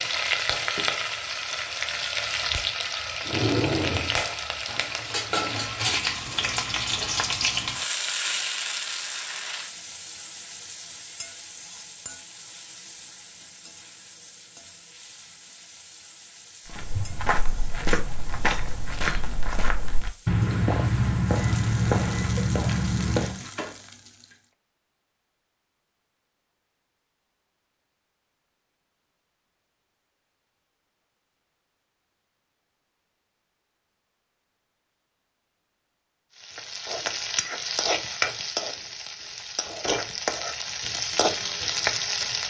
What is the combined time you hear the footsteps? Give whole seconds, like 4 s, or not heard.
7 s.